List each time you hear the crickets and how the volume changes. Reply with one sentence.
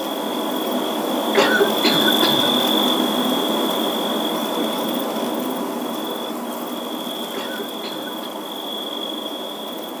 You can hear the crickets from 0.0 to 9.9 s, getting quieter.